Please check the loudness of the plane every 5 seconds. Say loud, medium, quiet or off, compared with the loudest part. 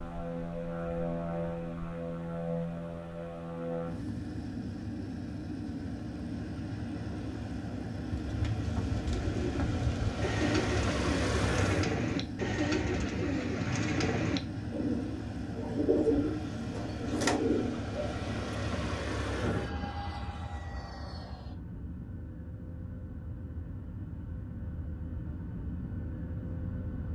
loud, loud, loud, loud, medium, medium.